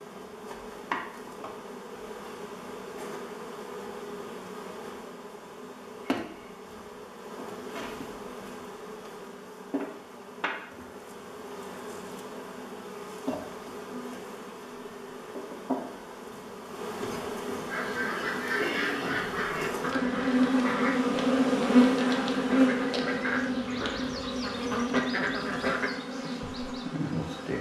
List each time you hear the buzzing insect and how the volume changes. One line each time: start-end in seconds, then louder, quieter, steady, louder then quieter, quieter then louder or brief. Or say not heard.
0.0-27.5 louder.